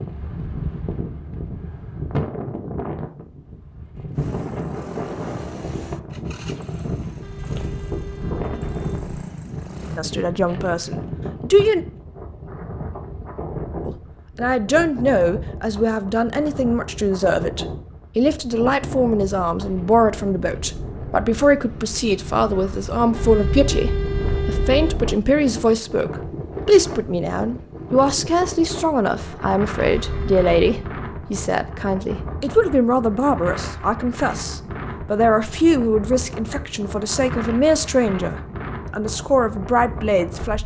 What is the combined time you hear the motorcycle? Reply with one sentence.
The motorcycle can be heard for 6 seconds in total.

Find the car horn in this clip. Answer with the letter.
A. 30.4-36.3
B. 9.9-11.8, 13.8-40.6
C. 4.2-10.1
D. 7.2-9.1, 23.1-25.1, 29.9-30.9
D.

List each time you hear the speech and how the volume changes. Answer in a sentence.
You can hear the speech briefly from 9.9 to 11.8 s; and from 13.8 to 40.6 s, at a steady volume.